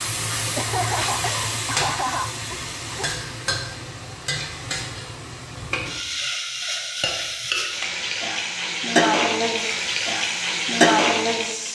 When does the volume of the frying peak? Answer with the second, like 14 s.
11 s.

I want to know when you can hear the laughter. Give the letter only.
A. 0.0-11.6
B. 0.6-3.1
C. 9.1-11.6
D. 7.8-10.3
B.